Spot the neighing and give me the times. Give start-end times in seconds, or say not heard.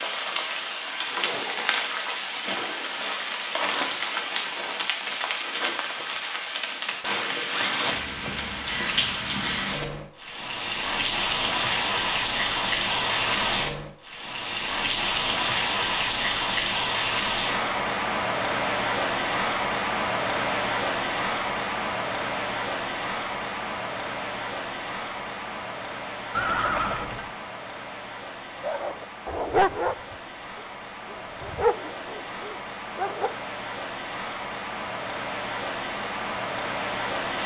26.3-27.4.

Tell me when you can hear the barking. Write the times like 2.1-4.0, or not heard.
28.6-29.9, 30.6-33.3.